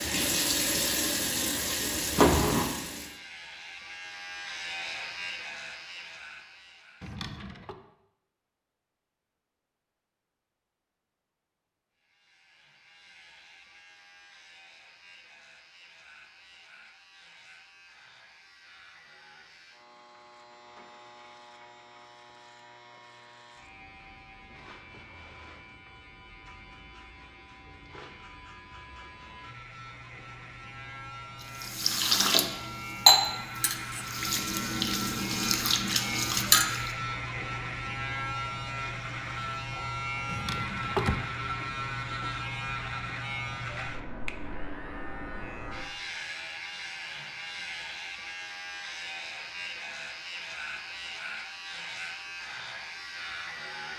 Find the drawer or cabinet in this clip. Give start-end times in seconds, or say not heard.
7.0-7.8, 40.2-41.2.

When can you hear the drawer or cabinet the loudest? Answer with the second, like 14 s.
41 s.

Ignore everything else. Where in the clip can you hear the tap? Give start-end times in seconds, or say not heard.
0.0-3.1, 31.4-37.0.